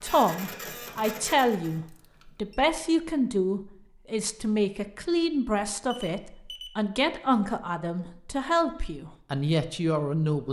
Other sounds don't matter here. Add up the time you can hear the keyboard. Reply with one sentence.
You can't hear the keyboard here.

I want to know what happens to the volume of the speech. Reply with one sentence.
The volume of the speech stays about the same.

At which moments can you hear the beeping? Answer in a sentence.
The beeping can be heard from 1.9 to 2.6 s and from 5.9 to 6.7 s.